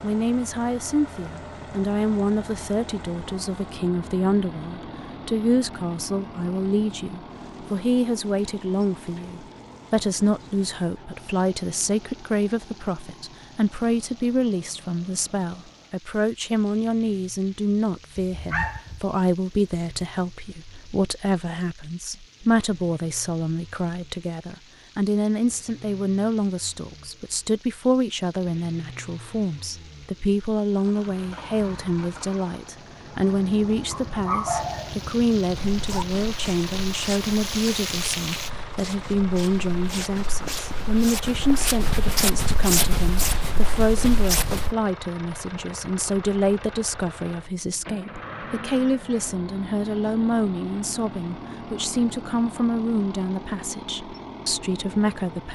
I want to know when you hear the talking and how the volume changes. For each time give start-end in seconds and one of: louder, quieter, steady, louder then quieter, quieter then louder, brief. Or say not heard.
0.0-55.5 steady.